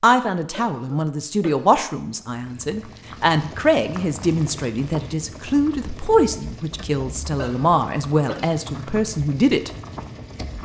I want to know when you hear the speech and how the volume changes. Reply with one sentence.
The speech can be heard from 0.0 to 9.7 s, at a steady volume.